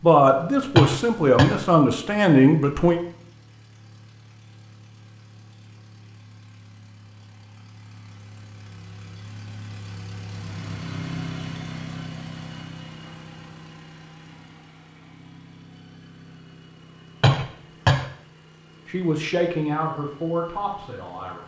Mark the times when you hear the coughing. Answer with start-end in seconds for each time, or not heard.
0.8-1.6, 17.2-18.1.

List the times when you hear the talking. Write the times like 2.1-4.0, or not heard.
0.0-3.0, 18.9-21.4.